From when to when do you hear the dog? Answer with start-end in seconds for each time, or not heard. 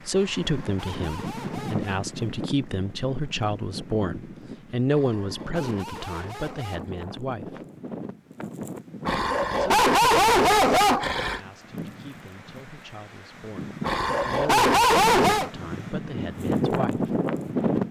0.1-2.0, 4.8-7.0, 9.1-11.4, 13.8-15.5.